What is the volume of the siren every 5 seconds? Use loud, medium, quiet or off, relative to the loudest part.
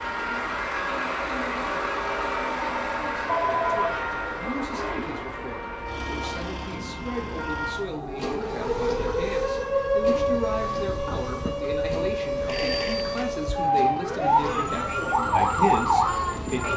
quiet, medium, loud, loud.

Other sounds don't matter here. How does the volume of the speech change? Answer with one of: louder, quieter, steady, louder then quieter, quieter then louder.
louder.